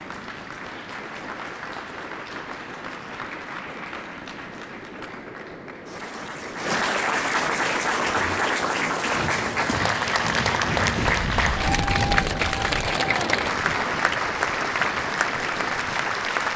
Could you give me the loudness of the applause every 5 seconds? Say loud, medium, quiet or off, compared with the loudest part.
quiet, loud, loud, loud.